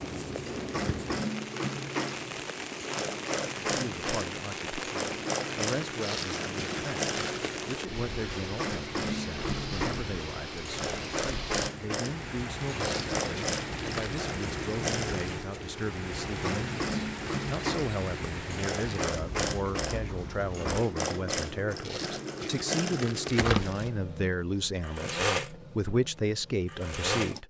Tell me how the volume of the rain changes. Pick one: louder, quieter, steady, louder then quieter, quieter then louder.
steady.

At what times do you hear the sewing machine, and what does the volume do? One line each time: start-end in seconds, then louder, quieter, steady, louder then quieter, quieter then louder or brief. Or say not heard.
0.1-27.4 steady.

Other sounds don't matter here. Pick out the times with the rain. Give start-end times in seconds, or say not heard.
0.0-20.8.